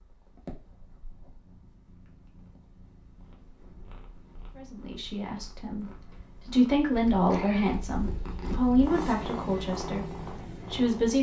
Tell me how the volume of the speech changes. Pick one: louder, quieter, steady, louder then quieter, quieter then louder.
louder then quieter.